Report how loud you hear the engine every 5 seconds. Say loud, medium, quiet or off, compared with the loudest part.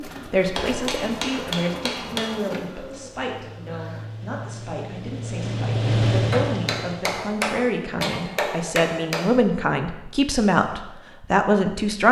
quiet, loud, off.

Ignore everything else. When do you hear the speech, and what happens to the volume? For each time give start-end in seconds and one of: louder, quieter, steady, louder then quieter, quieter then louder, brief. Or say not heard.
0.0-12.0 quieter then louder.